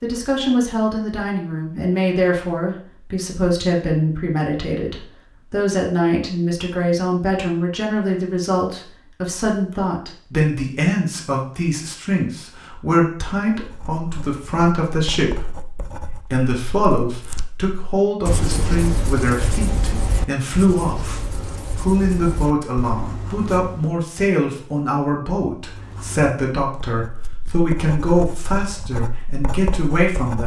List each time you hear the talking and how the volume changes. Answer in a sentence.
You can hear the talking from 0.0 to 30.4 s, at a steady volume.